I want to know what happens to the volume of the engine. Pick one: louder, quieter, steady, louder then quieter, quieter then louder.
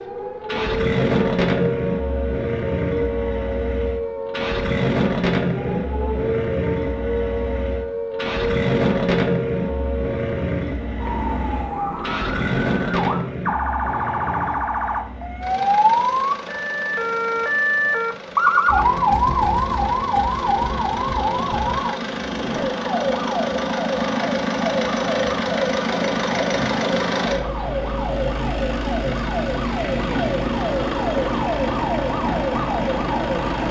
quieter then louder.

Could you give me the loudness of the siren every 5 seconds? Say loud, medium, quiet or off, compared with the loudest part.
medium, medium, medium, loud, medium, medium, medium.